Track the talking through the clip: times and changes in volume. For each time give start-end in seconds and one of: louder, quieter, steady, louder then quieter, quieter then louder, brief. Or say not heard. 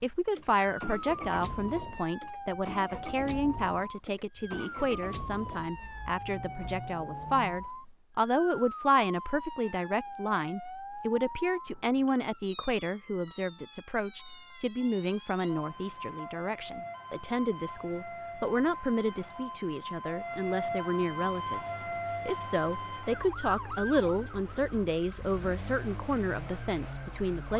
0.0-27.5 steady.